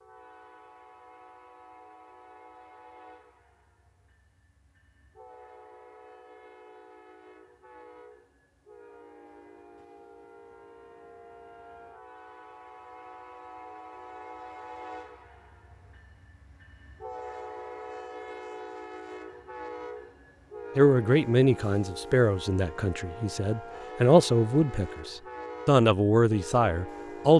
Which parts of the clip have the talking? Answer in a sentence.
You can hear the talking from 20.8 to 27.3 s.